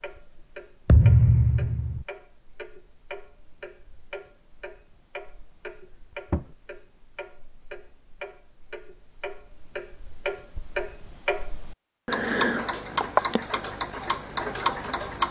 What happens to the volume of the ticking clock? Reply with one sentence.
The loudness of the ticking clock goes up.